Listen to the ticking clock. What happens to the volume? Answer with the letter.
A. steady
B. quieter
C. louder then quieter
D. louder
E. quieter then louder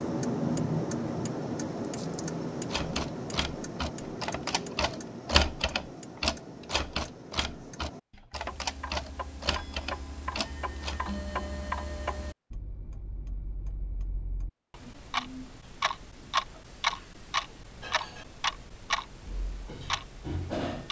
E.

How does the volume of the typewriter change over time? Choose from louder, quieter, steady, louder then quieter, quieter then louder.
louder then quieter.